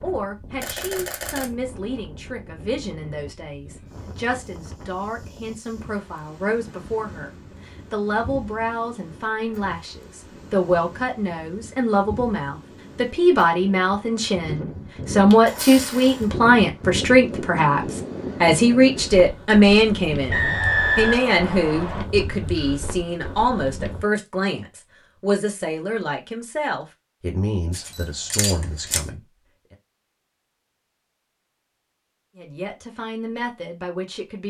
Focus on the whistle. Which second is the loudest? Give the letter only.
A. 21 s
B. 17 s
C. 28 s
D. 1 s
A.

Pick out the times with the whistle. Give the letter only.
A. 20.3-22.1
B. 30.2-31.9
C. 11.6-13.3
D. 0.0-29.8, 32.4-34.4
A.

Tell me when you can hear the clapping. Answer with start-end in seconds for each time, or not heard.
not heard.